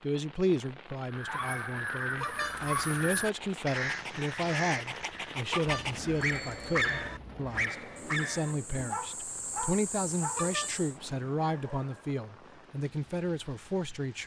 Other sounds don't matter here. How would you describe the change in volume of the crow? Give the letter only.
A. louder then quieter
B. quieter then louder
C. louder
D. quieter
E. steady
B.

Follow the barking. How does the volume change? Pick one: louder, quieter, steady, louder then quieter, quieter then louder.
louder then quieter.